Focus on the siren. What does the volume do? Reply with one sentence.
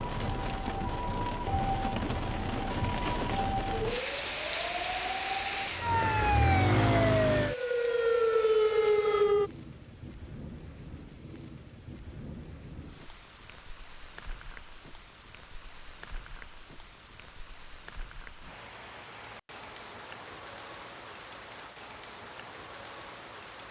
The loudness of the siren goes up.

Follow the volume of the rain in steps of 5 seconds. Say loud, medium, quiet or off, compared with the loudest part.
loud, medium, quiet, quiet, medium.